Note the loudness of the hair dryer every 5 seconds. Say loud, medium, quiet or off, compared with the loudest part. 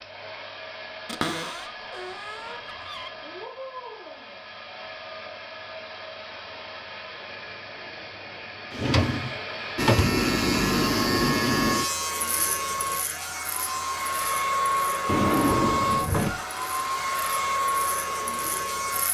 quiet, medium, loud, loud.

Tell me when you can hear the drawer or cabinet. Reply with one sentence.
The drawer or cabinet can be heard from 1.1 to 3.1 s, from 8.7 to 10.2 s and from 15.1 to 16.4 s.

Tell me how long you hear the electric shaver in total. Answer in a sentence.
You can hear the electric shaver for 9 seconds altogether.